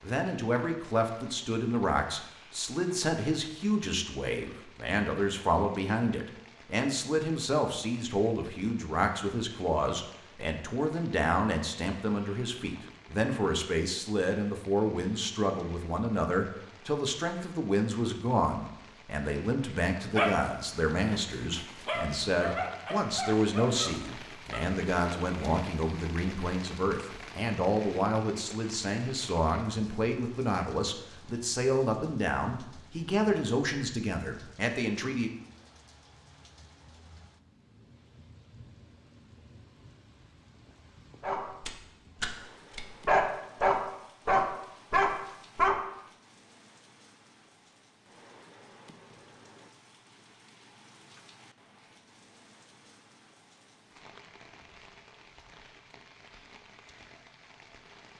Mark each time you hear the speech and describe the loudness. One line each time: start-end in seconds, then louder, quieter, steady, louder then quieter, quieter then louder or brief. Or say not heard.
0.0-35.3 steady.